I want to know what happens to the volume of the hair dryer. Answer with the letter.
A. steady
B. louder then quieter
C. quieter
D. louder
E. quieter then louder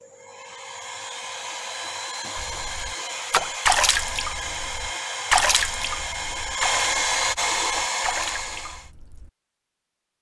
D.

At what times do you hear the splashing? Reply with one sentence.
The splashing can be heard from 2.4 to 9.3 s.